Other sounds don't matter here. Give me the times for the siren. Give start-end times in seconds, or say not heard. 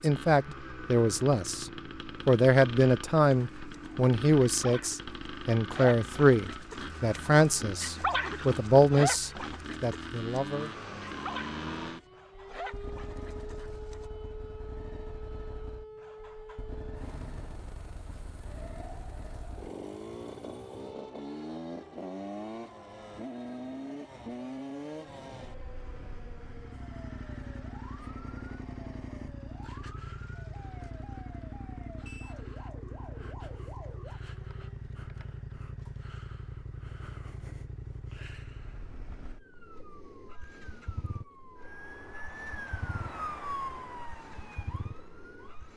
10.5-34.9, 39.4-45.7.